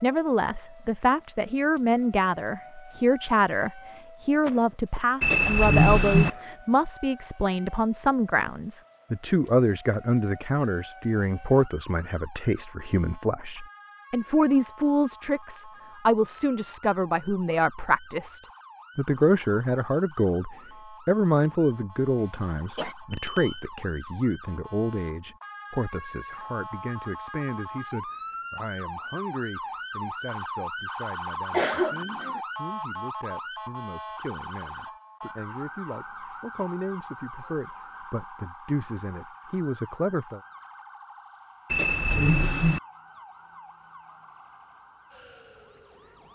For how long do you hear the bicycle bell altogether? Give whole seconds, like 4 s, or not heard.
3 s.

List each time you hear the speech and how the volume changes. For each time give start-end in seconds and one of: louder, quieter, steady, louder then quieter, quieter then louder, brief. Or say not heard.
0.0-40.4 quieter.